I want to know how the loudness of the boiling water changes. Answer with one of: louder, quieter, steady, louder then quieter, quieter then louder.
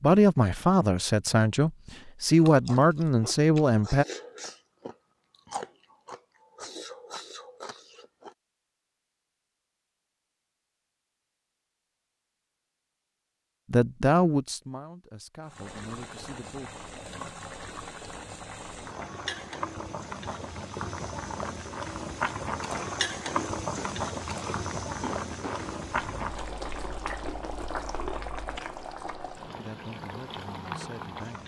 louder then quieter.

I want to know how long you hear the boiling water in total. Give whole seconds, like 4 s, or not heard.
16 s.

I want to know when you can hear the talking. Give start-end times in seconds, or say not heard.
0.0-4.0, 13.7-16.7, 29.6-31.4.